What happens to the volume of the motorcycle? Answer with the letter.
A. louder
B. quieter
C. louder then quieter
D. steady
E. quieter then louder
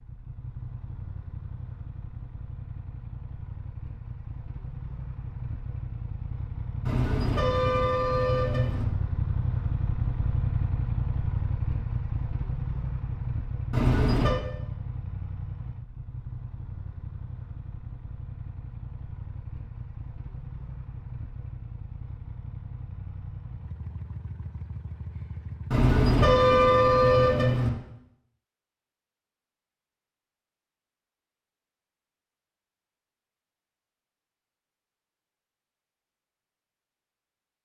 C.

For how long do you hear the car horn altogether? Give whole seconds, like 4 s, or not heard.
5 s.